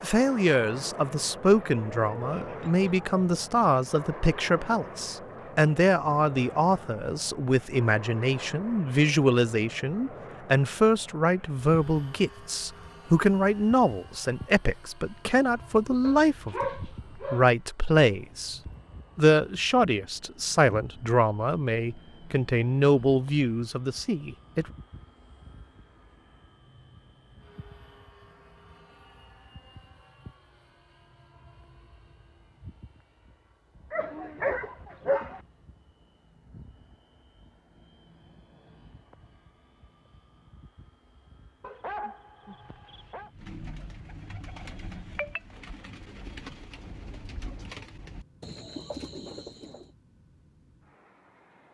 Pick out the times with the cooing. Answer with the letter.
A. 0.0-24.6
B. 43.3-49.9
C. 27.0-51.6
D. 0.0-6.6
B.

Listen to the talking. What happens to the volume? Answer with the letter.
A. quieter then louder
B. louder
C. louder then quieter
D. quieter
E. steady
E.